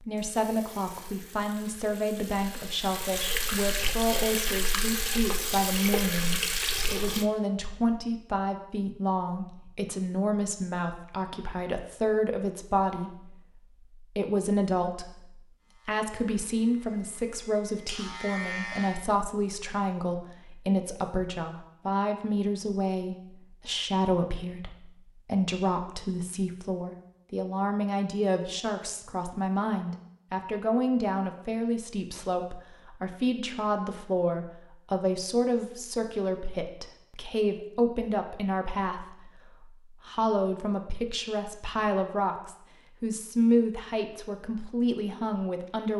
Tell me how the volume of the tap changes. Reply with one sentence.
The volume of the tap goes up.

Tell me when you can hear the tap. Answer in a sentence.
The tap can be heard from 0.1 to 7.2 s.